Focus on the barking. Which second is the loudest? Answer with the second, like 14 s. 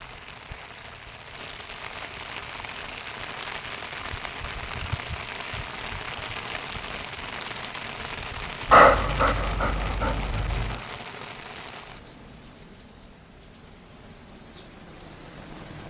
9 s.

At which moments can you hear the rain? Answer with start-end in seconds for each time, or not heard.
0.0-15.8.